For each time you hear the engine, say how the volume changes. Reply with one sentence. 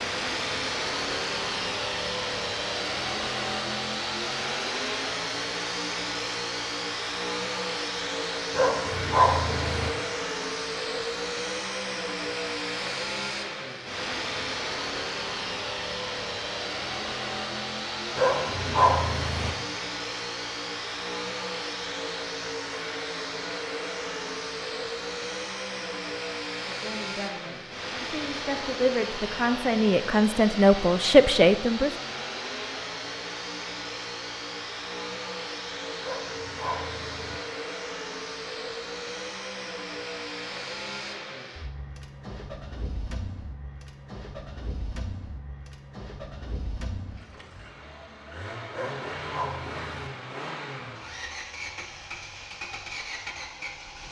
You can hear the engine from 0.0 to 54.0 s, getting quieter.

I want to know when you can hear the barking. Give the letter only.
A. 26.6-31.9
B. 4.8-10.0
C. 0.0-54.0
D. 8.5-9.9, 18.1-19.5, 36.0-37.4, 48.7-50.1
D.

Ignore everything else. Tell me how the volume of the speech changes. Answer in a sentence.
The volume of the speech goes up.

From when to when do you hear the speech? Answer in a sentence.
The speech can be heard from 26.6 to 31.9 s.